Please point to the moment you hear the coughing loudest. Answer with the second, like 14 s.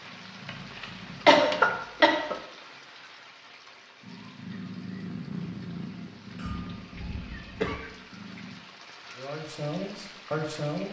1 s.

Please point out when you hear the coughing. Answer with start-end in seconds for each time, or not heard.
0.5-2.4, 6.3-7.8.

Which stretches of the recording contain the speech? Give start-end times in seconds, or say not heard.
9.2-10.8.